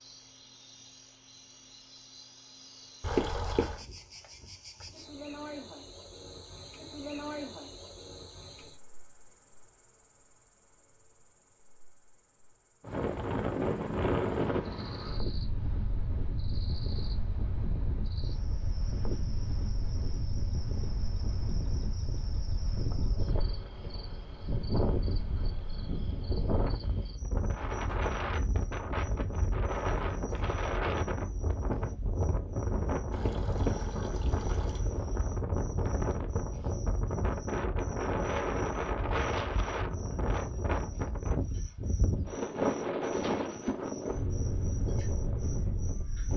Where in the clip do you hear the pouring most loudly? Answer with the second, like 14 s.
3 s.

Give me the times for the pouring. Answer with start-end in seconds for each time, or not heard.
3.0-3.8, 33.1-34.9.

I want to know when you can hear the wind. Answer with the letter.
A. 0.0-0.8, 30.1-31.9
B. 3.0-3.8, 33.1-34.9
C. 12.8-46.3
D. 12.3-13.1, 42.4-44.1
C.